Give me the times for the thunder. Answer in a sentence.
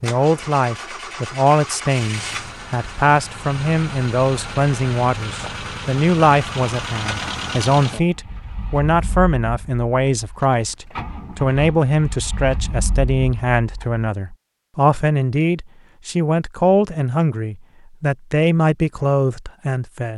The thunder can't be heard in this clip.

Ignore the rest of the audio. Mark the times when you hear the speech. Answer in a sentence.
The speech can be heard from 0.0 to 20.1 s.